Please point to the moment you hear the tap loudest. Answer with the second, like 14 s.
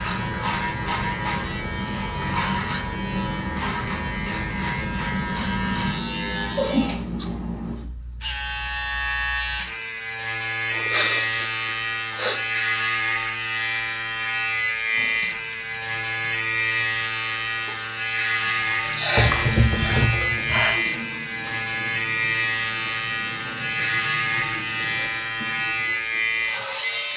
20 s.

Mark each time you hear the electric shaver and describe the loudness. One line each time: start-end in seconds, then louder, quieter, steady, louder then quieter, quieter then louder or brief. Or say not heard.
0.0-27.1 steady.